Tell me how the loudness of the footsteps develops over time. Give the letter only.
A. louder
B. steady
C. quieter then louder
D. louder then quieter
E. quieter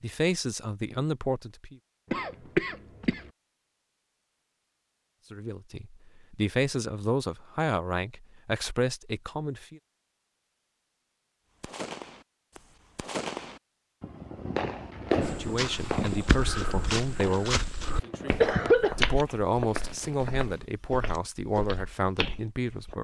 E.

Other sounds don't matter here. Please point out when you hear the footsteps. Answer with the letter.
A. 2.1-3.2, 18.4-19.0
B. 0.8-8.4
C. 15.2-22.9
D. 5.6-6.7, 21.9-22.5
C.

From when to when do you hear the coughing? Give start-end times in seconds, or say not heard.
2.1-3.2, 18.4-19.0.